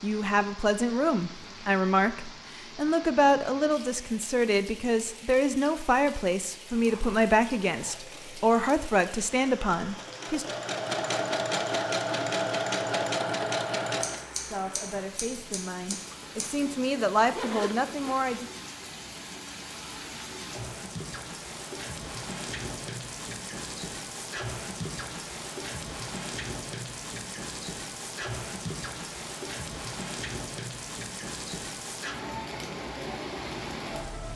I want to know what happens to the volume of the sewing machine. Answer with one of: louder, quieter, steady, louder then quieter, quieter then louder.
louder.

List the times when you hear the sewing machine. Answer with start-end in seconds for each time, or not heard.
6.7-14.2.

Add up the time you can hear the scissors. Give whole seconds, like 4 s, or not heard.
3 s.